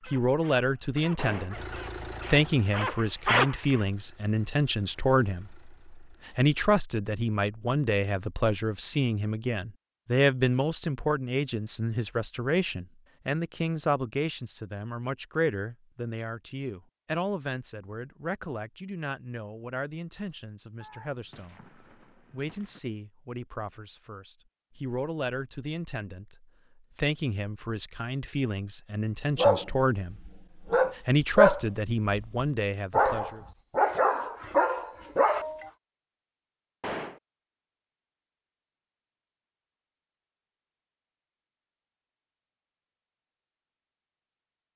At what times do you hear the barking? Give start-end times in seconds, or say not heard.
0.0-3.8, 29.4-35.7.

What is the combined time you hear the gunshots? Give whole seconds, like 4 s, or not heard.
3 s.